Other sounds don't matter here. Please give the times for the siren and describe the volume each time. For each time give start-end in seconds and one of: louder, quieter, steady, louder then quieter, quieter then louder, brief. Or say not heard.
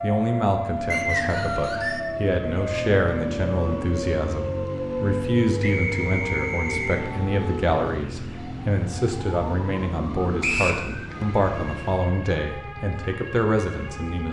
0.0-14.2 quieter.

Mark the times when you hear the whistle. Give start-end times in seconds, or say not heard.
0.9-2.0, 5.6-7.0, 10.4-10.8.